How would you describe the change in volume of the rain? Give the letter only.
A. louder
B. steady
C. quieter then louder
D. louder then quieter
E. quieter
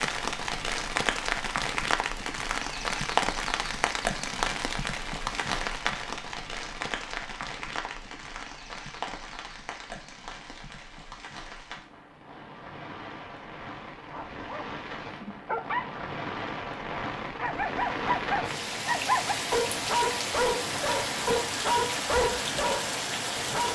C.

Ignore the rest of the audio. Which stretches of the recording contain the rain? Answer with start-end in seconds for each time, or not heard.
0.0-23.7.